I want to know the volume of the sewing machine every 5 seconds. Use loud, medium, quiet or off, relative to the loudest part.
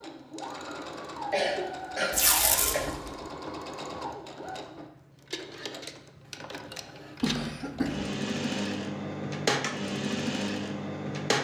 medium, loud, loud.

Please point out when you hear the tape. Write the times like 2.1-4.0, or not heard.
2.1-3.0.